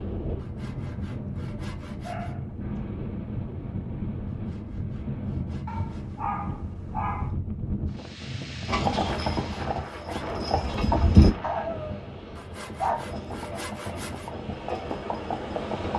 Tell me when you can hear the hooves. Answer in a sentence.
The hooves can be heard from 8.7 to 11.3 s and from 12.9 to 15.9 s.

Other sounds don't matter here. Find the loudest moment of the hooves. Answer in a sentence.
The volume of the hooves peaks at 11 seconds.